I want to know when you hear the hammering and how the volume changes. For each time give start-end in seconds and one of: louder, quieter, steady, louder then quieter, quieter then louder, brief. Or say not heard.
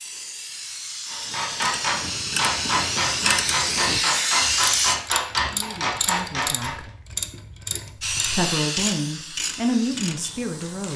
1.1-6.8 steady.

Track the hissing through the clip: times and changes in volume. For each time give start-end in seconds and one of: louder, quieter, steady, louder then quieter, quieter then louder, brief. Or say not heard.
0.0-5.0 louder
8.0-10.9 brief.